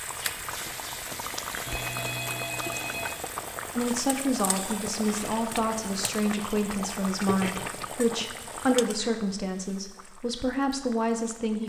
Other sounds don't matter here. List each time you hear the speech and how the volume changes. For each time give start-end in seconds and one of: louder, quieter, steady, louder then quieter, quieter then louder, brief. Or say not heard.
3.8-11.6 steady.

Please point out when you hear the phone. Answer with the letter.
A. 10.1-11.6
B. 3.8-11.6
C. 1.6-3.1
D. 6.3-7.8
C.